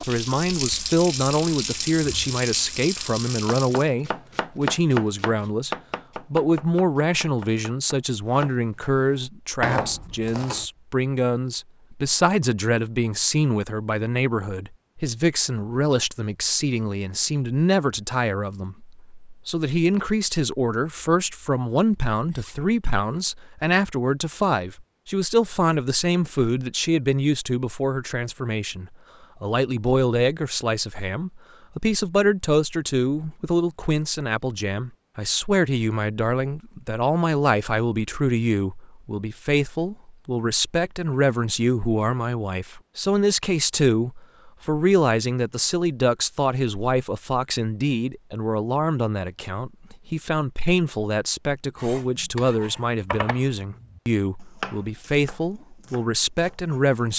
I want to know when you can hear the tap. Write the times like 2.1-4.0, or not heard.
0.0-3.9.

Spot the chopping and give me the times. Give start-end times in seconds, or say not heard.
3.5-10.7, 51.8-57.1.